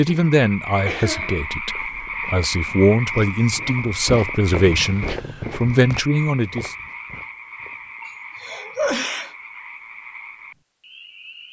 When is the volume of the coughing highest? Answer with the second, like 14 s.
9 s.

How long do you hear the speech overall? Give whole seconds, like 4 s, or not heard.
7 s.